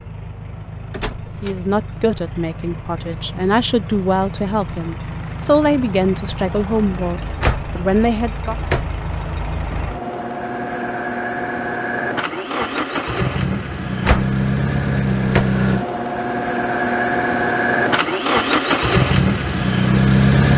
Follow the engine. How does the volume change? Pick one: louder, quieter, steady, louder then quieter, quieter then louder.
louder.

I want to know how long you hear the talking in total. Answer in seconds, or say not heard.
7 s.